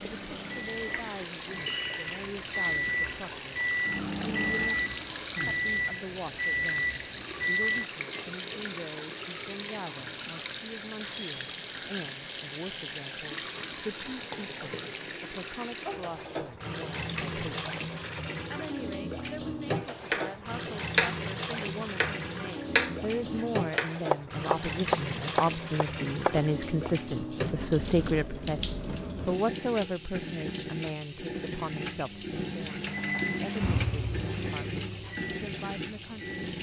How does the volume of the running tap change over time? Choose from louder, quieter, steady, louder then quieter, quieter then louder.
steady.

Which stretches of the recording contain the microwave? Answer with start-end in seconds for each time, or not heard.
0.0-8.2, 31.9-36.2.